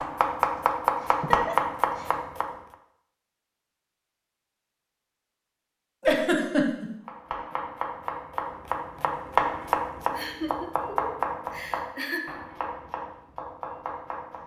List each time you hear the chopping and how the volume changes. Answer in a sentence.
You can hear the chopping briefly from 0.0 to 2.5 s; and from 7.0 to 14.4 s, getting louder then quieter.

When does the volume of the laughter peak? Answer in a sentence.
The loudest moment of the laughter is at 6 seconds.